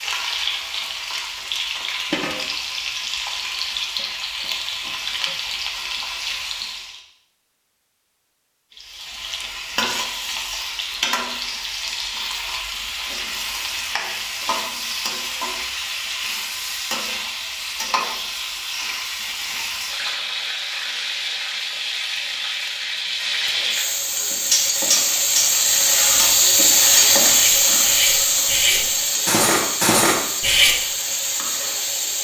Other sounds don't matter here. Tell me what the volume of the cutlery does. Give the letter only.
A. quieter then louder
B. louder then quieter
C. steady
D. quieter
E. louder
A.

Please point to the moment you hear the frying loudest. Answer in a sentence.
The volume of the frying peaks at 27 seconds.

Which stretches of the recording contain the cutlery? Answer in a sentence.
You can hear the cutlery from 24.5 to 30.8 s.